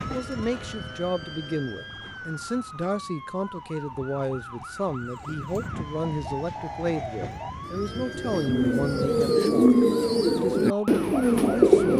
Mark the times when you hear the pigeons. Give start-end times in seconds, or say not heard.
5.0-11.9.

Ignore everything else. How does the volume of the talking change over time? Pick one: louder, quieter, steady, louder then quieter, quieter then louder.
steady.